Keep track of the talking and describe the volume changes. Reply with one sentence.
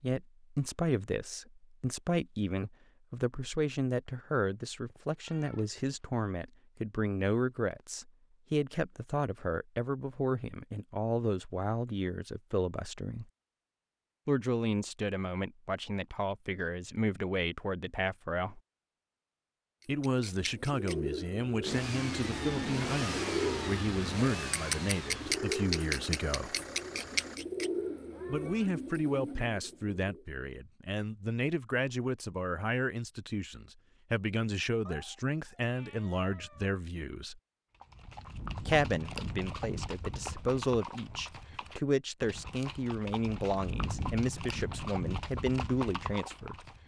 The volume of the talking stays about the same.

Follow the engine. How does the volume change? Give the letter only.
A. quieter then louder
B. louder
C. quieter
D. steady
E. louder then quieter
C.